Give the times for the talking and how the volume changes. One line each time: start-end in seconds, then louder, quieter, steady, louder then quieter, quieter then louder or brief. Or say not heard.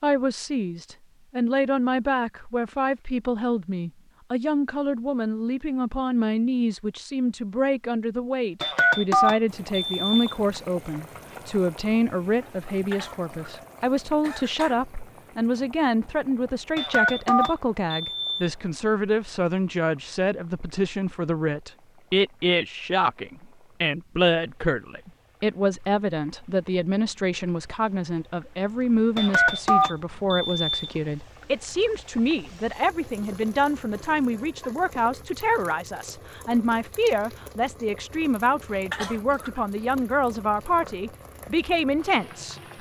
0.0-42.6 steady.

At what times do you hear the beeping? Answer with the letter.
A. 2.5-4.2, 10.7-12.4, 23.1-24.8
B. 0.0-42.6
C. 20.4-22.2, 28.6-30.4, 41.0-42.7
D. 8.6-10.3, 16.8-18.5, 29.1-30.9
D.